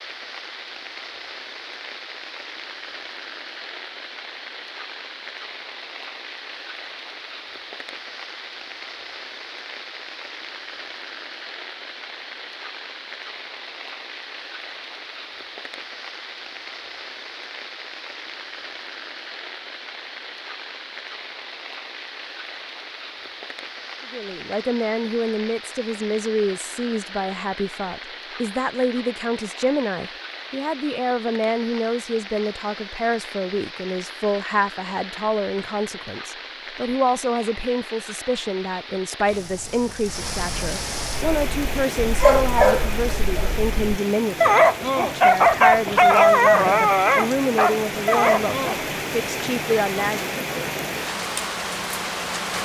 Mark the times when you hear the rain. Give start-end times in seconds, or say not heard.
0.0-52.5.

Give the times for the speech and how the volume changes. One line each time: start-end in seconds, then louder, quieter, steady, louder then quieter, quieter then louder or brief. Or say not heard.
24.1-50.4 steady.